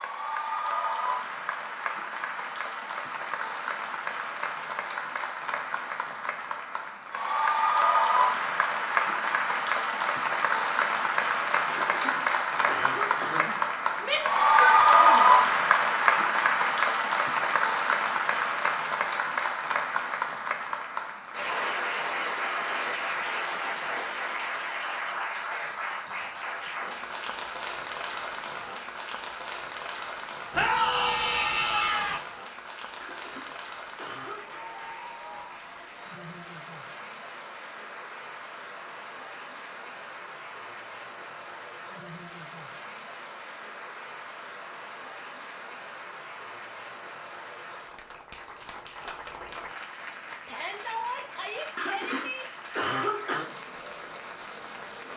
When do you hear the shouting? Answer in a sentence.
You can hear the shouting from 14.0 to 15.4 s, from 30.5 to 32.2 s and from 50.5 to 52.5 s.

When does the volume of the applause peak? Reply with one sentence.
The volume of the applause peaks at 15 seconds.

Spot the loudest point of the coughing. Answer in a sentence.
The loudest moment of the coughing is at 53 seconds.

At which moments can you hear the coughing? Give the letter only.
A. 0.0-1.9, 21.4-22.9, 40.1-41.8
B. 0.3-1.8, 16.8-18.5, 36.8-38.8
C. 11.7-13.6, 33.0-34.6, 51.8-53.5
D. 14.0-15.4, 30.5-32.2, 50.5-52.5
C.